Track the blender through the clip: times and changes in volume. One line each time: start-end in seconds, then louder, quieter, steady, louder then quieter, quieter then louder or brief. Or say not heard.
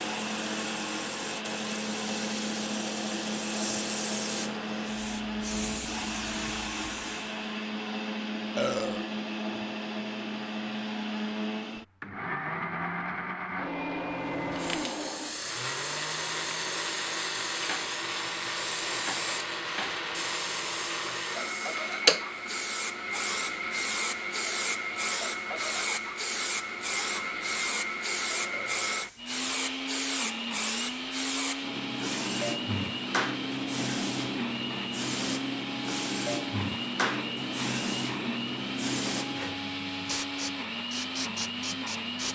0.0-42.2 steady.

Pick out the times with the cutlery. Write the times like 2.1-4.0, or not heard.
not heard.